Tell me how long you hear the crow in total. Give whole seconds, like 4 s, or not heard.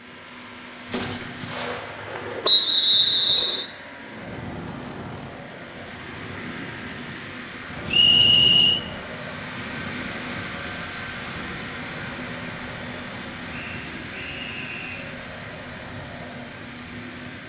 not heard.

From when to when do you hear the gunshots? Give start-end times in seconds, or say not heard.
0.8-2.5.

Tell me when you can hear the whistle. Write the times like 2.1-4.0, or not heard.
2.5-3.6, 7.9-8.8, 13.5-15.2.